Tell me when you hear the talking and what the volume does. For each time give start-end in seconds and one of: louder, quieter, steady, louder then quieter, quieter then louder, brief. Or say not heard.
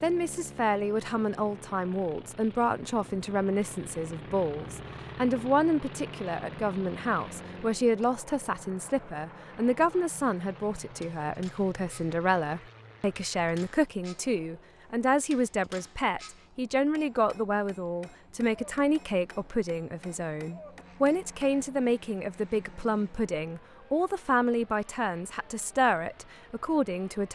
0.0-27.3 steady.